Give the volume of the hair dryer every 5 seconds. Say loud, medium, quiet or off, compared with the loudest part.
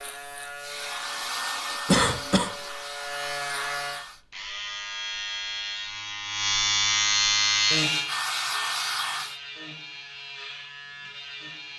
medium, loud, off.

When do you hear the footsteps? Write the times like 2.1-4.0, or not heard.
not heard.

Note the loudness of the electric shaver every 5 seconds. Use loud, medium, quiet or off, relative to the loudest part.
medium, loud, quiet.